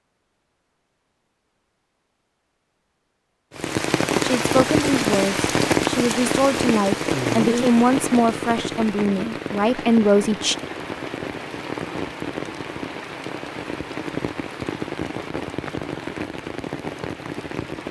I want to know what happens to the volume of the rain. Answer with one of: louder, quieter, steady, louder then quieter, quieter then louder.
quieter.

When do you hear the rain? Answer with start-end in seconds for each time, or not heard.
3.5-17.8.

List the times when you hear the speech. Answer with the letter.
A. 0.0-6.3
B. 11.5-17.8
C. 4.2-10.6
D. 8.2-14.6
C.